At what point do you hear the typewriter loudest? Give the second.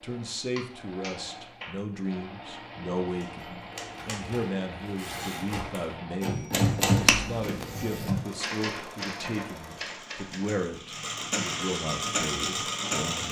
7 s.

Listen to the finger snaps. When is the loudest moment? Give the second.
7 s.